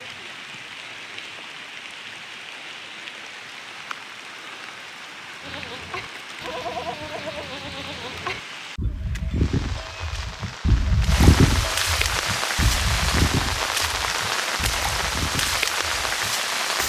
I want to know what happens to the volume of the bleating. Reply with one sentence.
The volume of the bleating goes up, then down.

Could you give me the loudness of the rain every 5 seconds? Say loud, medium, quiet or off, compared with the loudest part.
quiet, quiet, loud, loud.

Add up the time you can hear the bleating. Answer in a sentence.
You can hear the bleating for 11 seconds altogether.